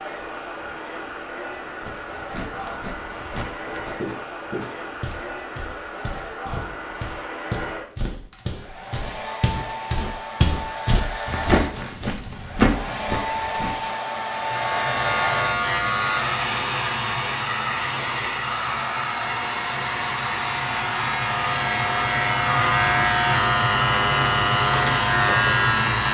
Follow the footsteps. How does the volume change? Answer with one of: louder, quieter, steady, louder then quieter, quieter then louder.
louder.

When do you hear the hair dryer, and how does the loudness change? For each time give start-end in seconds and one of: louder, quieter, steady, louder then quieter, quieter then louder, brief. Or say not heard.
0.0-26.0 louder.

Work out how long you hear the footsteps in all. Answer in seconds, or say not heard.
12 s.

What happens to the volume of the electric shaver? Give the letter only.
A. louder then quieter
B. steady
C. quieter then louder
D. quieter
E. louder
C.